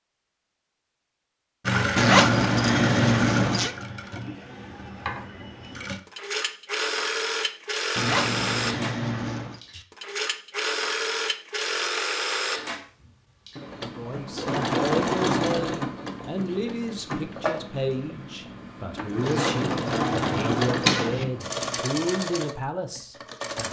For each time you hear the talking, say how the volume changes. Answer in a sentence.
You can hear the talking from 13.8 to 23.6 s, at a steady volume.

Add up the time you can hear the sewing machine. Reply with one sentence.
The sewing machine can be heard for 22 seconds in total.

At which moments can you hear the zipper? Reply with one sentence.
The zipper can be heard from 1.9 to 3.8 s, from 8.0 to 9.6 s and from 19.2 to 21.2 s.